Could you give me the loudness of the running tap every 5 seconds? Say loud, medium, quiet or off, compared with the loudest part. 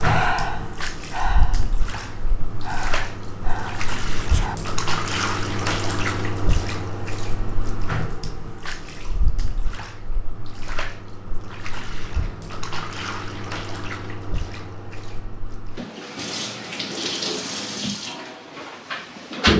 loud, loud, medium, loud.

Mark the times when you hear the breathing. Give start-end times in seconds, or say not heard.
0.0-4.5.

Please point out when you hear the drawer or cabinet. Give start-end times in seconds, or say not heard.
not heard.